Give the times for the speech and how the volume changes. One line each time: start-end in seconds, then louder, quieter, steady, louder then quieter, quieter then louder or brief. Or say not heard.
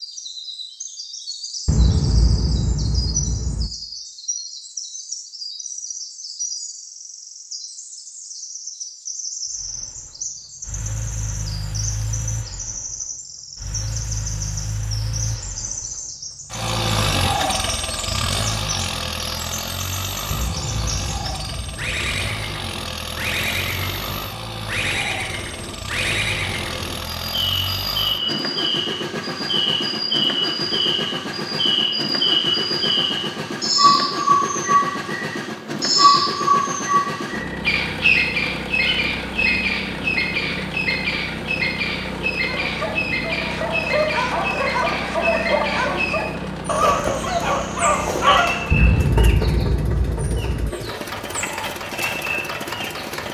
not heard.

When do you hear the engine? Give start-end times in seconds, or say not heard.
9.6-53.2.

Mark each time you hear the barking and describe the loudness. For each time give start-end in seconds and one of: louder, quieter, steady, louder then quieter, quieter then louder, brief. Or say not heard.
42.5-48.7 louder.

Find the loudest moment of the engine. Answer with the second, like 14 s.
17 s.